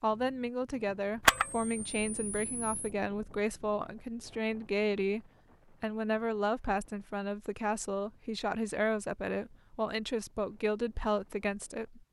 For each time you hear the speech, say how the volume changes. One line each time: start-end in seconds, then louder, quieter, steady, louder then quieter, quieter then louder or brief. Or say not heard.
0.0-12.0 steady.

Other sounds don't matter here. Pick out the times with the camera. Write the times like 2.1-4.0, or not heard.
1.2-2.8.